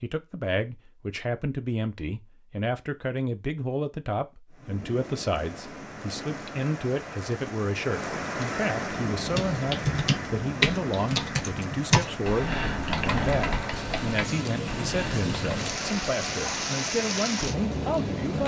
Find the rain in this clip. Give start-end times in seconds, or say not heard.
4.5-18.4.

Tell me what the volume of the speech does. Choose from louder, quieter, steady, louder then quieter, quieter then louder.
steady.